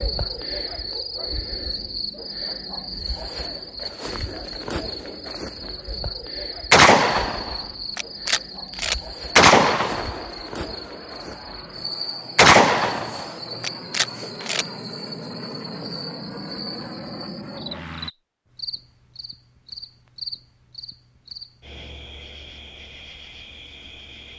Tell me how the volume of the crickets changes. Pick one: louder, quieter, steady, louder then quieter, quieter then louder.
quieter.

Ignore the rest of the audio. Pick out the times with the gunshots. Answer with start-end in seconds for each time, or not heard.
6.7-10.2, 12.3-14.7.